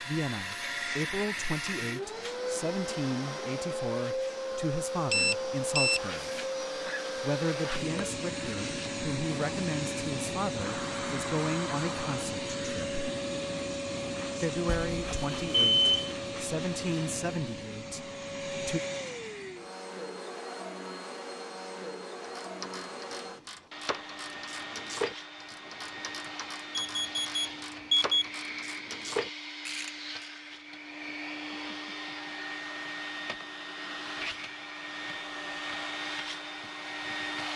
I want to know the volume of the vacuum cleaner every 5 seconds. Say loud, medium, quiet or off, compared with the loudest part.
loud, loud, loud, loud, medium, medium, medium, loud.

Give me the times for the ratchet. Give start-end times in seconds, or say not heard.
22.2-30.3.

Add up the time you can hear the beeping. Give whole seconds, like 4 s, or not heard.
4 s.